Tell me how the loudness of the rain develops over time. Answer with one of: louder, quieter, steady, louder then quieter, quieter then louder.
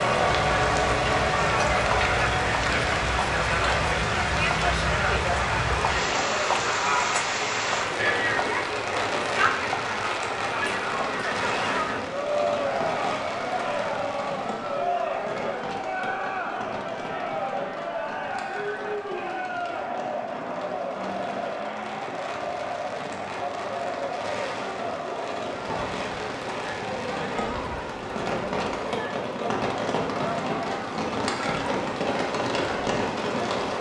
quieter then louder.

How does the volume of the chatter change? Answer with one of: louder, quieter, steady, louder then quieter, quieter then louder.
quieter.